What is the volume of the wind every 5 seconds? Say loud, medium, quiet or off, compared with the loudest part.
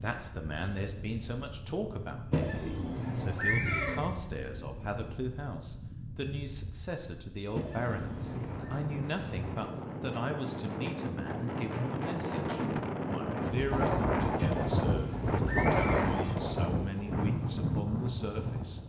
quiet, medium, loud, loud.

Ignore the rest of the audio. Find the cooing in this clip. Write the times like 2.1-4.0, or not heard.
2.5-4.2.